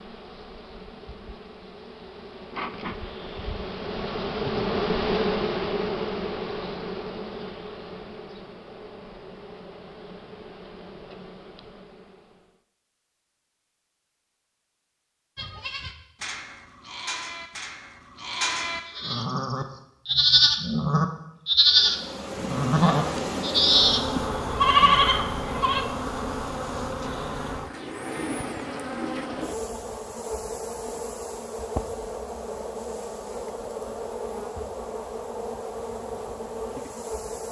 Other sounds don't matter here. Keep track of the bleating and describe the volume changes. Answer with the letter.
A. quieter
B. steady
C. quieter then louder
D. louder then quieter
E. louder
E.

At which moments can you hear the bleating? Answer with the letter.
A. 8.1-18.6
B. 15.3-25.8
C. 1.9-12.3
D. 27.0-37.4
B.